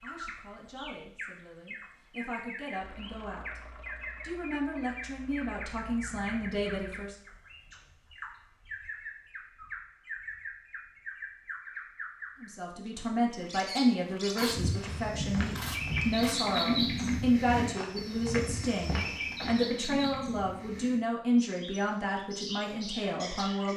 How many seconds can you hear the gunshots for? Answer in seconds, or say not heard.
2 s.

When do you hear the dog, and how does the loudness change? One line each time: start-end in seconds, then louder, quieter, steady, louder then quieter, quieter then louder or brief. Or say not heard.
not heard.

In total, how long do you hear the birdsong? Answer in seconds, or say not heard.
24 s.